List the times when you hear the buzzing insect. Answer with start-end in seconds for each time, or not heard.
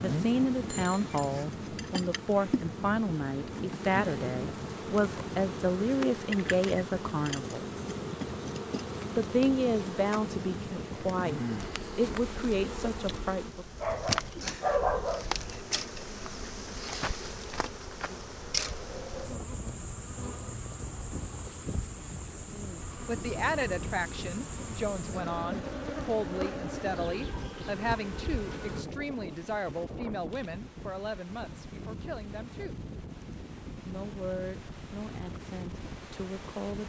0.0-28.9.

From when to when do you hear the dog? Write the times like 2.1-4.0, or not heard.
13.8-15.3.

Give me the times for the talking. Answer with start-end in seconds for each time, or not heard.
0.0-7.7, 9.2-13.7, 22.5-32.8, 33.9-36.8.